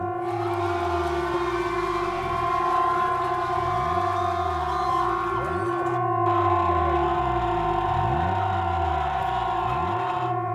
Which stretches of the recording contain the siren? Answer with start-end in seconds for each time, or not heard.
0.0-10.5.